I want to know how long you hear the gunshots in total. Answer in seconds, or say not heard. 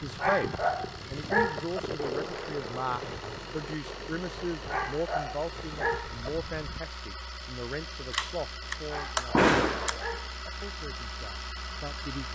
2 s.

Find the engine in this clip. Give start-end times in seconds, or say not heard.
0.0-12.3.